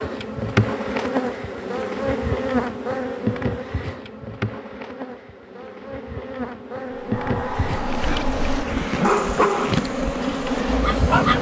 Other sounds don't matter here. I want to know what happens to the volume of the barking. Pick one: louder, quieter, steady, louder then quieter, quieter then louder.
louder then quieter.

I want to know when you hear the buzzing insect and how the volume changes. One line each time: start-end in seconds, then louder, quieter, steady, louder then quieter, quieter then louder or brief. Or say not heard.
0.0-11.3 quieter then louder.